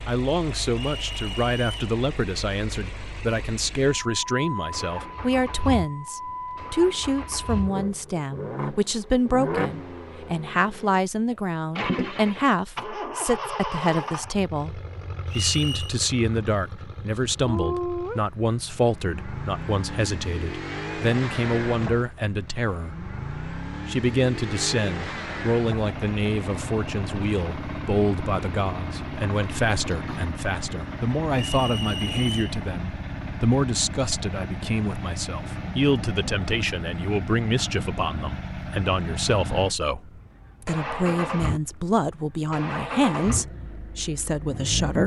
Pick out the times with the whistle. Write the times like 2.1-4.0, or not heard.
0.7-1.8, 15.2-15.9, 31.4-32.6.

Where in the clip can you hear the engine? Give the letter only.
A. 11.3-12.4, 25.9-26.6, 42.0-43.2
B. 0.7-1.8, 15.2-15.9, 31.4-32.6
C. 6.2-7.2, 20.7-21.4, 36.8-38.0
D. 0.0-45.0
D.